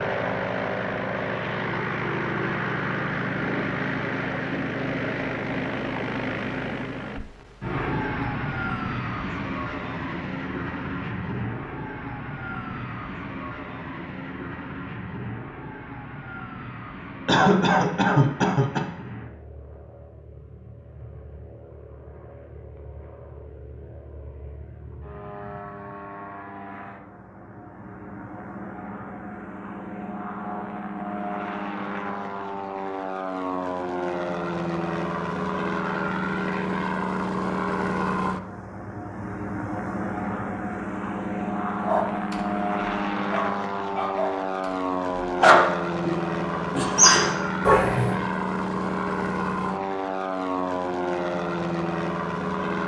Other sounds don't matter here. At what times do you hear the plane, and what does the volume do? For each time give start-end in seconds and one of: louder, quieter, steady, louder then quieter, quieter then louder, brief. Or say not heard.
0.0-52.8 quieter then louder.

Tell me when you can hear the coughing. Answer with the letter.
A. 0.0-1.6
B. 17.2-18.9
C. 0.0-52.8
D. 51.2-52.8
B.